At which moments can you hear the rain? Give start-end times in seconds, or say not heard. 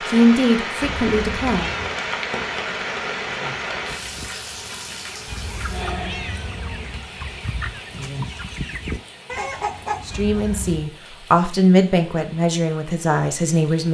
0.0-13.8.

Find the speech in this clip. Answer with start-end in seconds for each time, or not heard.
0.1-1.7, 10.1-13.8.